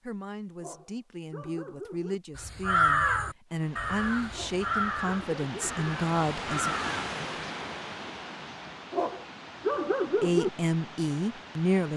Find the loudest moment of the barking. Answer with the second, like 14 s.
10 s.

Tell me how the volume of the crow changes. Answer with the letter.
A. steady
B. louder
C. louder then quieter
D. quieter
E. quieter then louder
E.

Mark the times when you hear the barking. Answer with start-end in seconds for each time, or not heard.
0.6-2.2, 4.3-5.8, 8.9-10.5.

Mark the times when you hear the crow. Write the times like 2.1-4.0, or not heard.
2.4-7.2.